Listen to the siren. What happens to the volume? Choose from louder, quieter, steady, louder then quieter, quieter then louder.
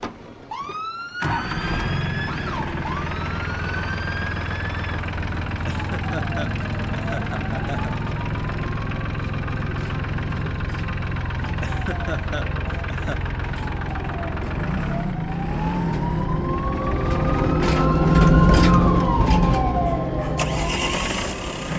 louder.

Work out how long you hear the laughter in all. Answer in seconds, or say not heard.
4 s.